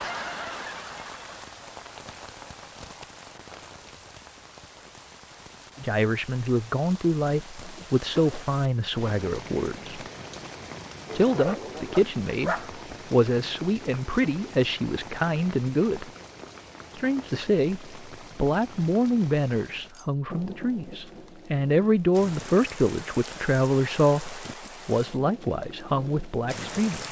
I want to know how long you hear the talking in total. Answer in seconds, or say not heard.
19 s.